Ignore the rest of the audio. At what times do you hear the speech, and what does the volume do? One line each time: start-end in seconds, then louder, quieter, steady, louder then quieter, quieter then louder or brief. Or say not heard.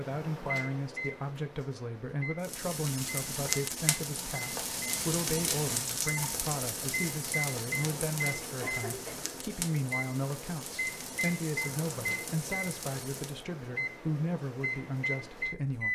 0.0-15.9 steady.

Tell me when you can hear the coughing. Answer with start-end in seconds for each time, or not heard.
8.6-9.4.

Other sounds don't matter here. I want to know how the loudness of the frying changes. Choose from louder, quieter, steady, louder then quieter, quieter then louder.
quieter.